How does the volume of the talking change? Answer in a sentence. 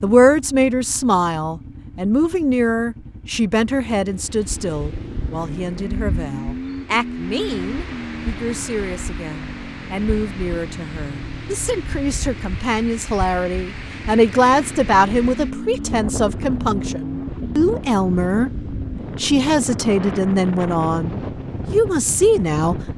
The volume of the talking goes down, then up.